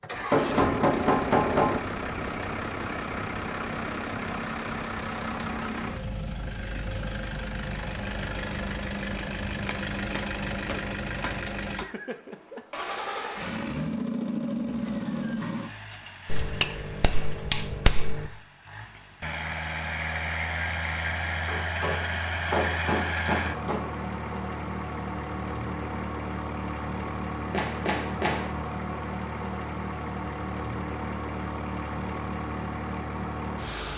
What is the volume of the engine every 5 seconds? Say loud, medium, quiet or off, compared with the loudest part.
loud, loud, loud, medium, loud, loud, loud.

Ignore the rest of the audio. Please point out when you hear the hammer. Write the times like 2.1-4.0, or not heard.
0.3-1.8, 9.1-11.8, 16.2-18.3, 21.2-23.9, 27.5-28.5.